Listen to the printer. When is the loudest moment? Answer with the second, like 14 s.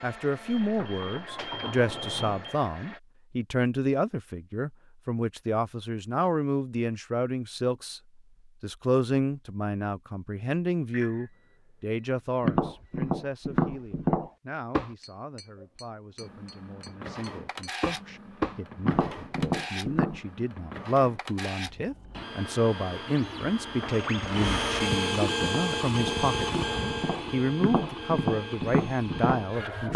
25 s.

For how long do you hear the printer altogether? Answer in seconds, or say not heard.
17 s.